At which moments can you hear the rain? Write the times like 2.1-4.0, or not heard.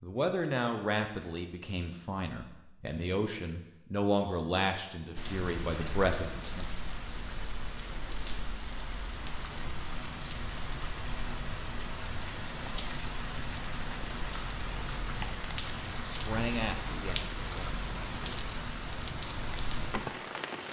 5.2-20.6.